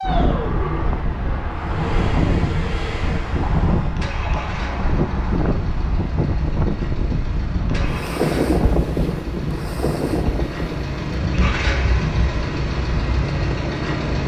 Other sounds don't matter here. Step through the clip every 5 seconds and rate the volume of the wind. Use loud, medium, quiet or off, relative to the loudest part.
loud, loud, medium.